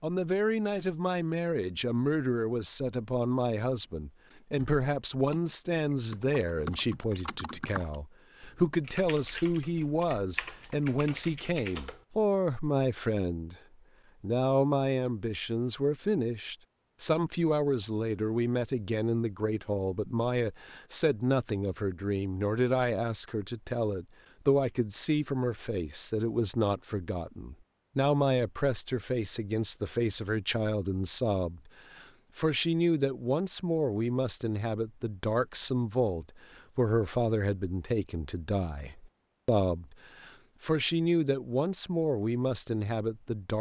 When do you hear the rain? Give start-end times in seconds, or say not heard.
not heard.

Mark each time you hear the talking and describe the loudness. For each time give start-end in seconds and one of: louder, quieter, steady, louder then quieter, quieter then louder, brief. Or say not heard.
0.0-13.6 steady
14.2-43.5 steady.